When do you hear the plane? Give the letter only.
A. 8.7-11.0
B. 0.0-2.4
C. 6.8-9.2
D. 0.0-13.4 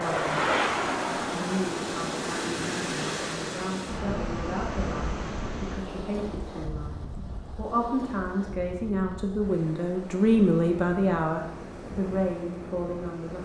B.